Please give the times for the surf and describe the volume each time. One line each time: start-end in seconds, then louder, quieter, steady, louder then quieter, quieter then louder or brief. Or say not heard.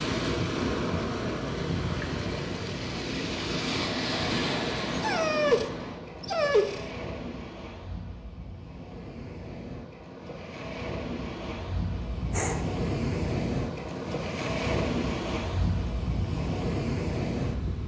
0.0-17.8 quieter then louder.